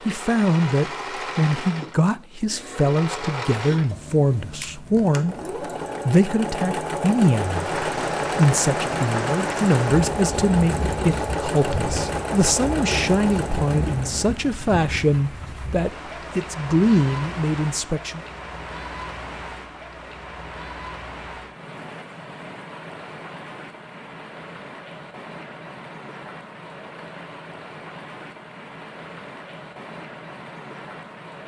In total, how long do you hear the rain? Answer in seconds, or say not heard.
24 s.